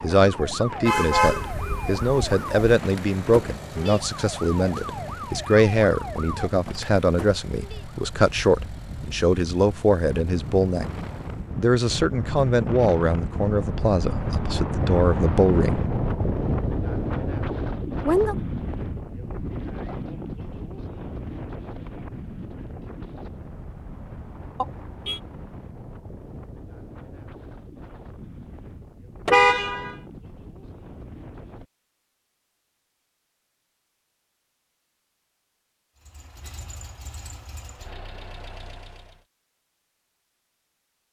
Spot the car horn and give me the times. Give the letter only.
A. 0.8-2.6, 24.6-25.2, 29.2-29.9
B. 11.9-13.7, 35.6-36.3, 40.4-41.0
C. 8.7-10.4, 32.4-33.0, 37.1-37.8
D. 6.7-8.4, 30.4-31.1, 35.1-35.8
A.